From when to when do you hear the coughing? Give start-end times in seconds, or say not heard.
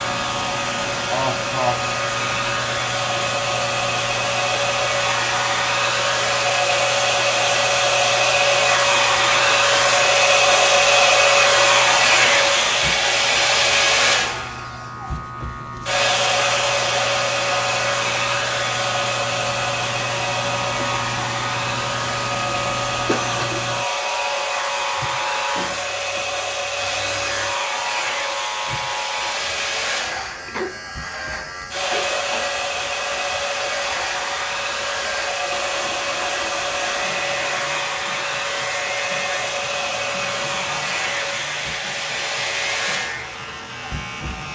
1.1-1.8, 23.1-23.6, 30.4-32.5.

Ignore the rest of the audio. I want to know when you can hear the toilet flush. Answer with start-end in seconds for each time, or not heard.
35.5-37.8.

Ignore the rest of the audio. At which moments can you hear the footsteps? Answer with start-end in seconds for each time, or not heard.
not heard.